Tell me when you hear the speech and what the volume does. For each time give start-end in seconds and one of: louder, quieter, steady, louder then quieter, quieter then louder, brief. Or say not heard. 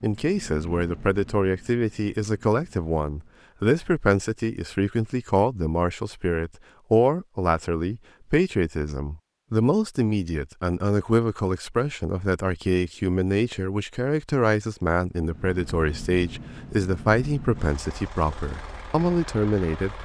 0.0-19.9 steady.